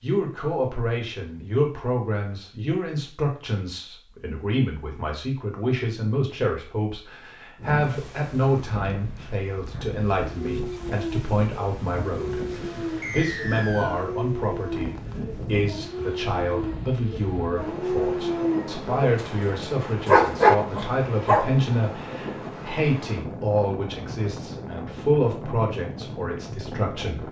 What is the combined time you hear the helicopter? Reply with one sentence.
The helicopter can't be heard in this clip.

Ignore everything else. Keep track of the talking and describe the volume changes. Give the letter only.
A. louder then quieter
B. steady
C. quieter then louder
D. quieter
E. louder
B.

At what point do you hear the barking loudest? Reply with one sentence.
The volume of the barking peaks at 20 seconds.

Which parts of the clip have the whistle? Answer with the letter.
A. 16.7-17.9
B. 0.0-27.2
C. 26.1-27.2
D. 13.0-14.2
D.